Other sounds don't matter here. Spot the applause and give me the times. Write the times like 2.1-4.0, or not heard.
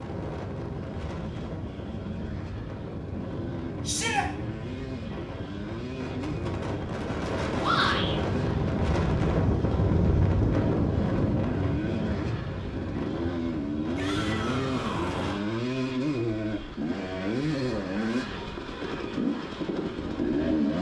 not heard.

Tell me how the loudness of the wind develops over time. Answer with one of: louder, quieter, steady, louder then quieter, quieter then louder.
louder then quieter.